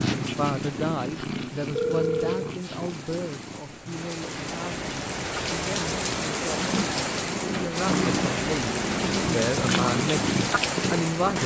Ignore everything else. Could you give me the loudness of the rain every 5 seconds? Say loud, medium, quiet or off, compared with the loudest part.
medium, loud, loud.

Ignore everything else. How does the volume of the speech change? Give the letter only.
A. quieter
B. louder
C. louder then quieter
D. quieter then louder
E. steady
D.